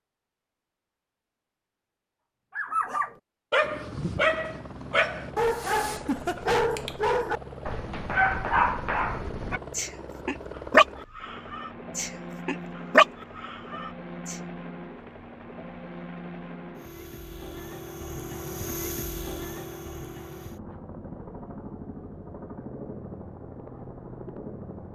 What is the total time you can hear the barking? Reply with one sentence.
The barking can be heard for 12 seconds in total.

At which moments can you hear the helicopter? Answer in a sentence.
You can hear the helicopter from 3.6 to 24.9 s.